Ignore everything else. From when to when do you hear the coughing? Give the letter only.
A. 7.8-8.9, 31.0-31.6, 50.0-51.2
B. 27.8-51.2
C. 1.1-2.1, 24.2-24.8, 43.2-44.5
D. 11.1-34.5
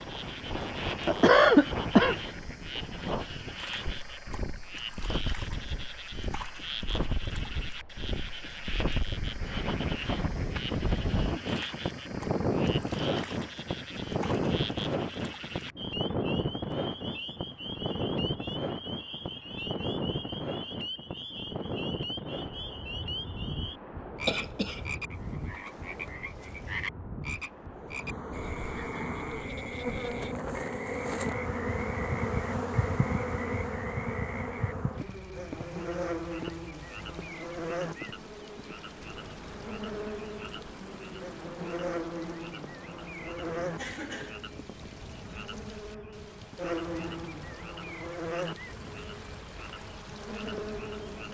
C.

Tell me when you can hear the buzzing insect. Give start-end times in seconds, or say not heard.
27.8-51.2.